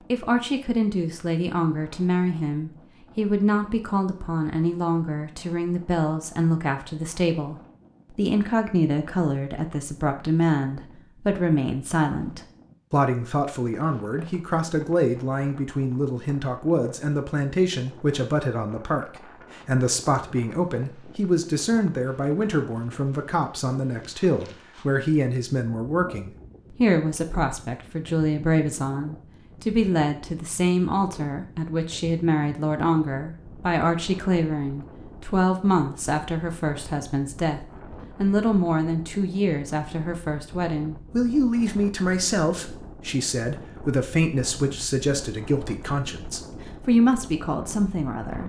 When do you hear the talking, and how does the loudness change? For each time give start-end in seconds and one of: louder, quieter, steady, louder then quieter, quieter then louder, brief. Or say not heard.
0.1-48.4 steady.